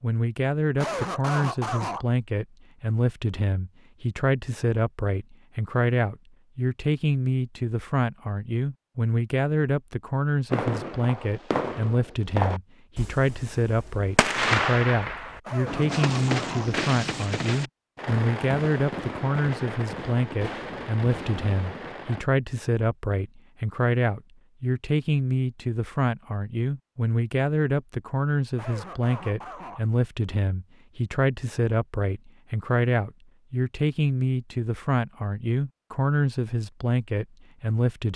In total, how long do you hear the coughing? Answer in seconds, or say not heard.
4 s.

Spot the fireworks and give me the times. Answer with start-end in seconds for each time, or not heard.
10.5-22.2.